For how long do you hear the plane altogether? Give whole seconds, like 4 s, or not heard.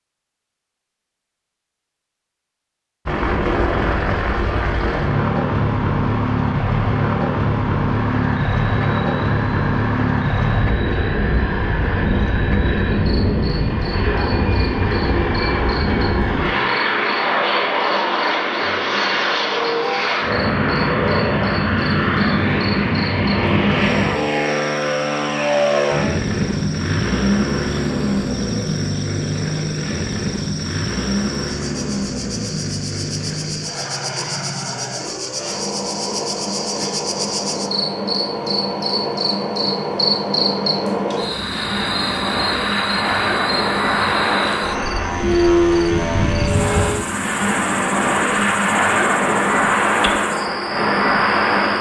49 s.